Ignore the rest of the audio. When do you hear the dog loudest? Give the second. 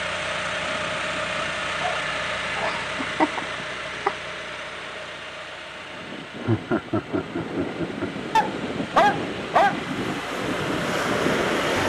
9 s.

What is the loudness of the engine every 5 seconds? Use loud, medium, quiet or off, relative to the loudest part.
loud, medium, loud.